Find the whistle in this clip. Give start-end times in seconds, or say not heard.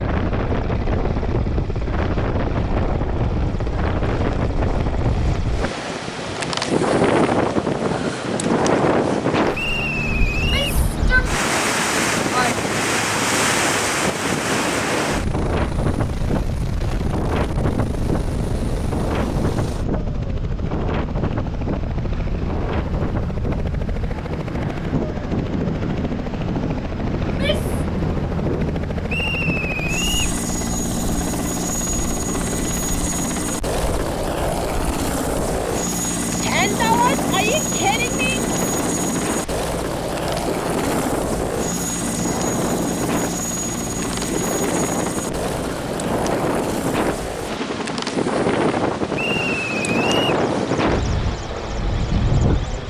9.5-10.8, 29.1-30.4, 49.1-50.4.